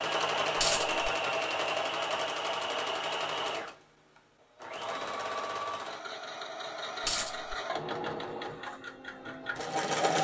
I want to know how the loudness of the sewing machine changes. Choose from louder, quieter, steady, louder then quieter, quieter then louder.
quieter.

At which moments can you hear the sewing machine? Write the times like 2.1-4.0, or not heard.
0.0-10.2.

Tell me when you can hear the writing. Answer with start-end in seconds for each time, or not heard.
not heard.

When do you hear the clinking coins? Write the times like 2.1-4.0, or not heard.
0.6-1.1, 7.0-7.5.